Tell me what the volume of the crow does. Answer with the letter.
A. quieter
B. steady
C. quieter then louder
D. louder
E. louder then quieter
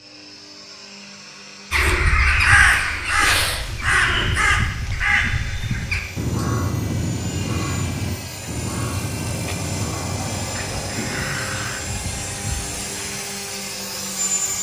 A.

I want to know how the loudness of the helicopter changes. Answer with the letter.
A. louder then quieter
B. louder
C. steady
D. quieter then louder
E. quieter
B.